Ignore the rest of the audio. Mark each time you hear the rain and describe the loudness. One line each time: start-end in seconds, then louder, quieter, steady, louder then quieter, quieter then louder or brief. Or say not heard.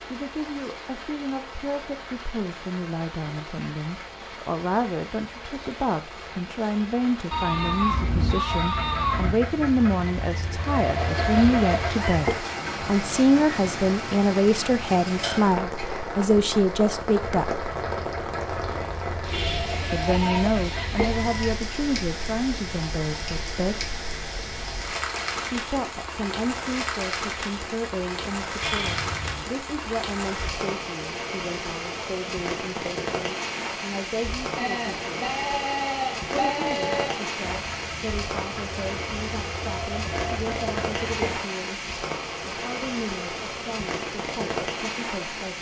0.0-45.5 louder.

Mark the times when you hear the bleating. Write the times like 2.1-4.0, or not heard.
7.3-9.3, 19.3-20.4, 28.6-29.4, 34.5-37.1.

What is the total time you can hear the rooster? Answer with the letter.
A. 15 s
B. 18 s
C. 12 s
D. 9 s
C.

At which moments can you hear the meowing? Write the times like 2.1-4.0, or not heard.
not heard.